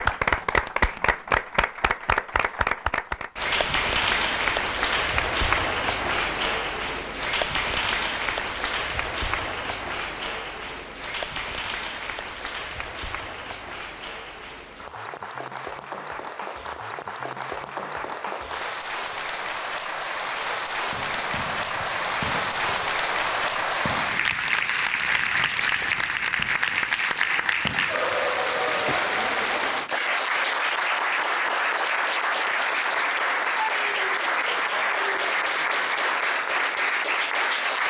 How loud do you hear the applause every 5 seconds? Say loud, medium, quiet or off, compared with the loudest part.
loud, loud, medium, medium, loud, loud, loud, loud.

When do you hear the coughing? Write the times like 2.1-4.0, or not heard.
28.6-29.1.